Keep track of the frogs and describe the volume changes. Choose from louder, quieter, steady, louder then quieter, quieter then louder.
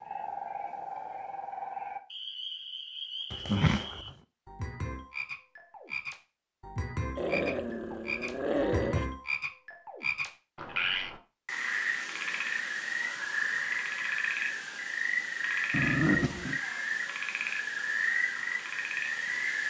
louder.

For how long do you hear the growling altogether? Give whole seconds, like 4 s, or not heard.
4 s.